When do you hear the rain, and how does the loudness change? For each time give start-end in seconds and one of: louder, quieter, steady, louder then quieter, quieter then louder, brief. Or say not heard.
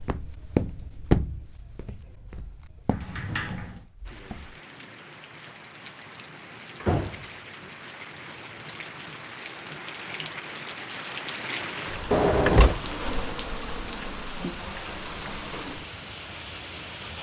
4.0-17.1 louder.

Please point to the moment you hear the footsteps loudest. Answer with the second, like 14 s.
1 s.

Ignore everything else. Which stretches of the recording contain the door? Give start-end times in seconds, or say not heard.
2.9-3.9, 6.8-7.7, 12.1-12.8.